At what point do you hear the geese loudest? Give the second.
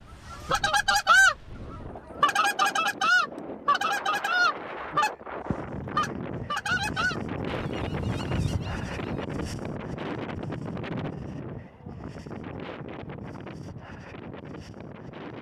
1 s.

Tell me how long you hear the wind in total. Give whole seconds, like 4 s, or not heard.
15 s.